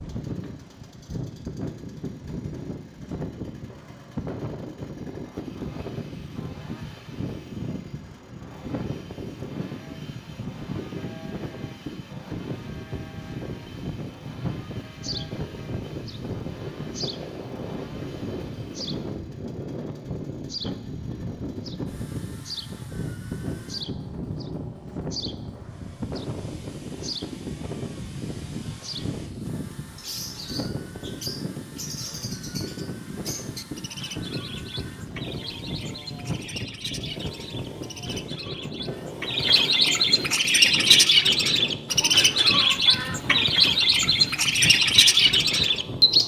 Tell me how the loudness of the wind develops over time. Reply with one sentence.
The loudness of the wind stays about the same.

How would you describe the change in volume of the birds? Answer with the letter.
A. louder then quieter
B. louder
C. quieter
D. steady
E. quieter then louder
B.